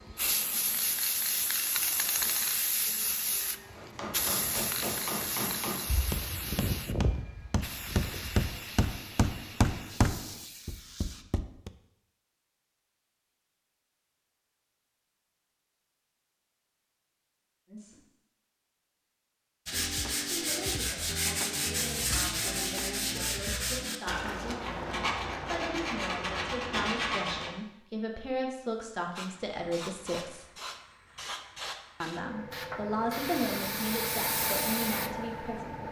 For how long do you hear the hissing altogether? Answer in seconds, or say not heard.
18 s.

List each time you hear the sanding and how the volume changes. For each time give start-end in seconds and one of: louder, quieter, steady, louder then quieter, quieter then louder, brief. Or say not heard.
19.6-27.6 steady.